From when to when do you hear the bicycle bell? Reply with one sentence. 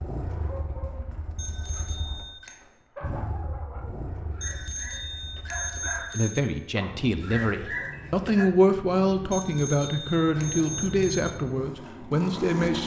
The bicycle bell can be heard from 1.4 to 2.5 s, from 4.4 to 6.4 s and from 9.3 to 11.3 s.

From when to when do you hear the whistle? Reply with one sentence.
You can't hear the whistle here.